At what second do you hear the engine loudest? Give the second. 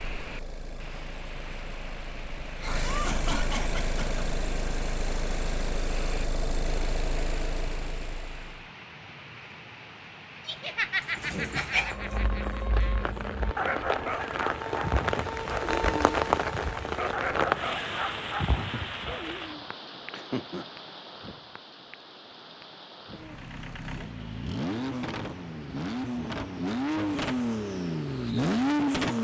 29 s.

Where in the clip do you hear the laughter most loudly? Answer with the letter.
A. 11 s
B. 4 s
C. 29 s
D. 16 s
A.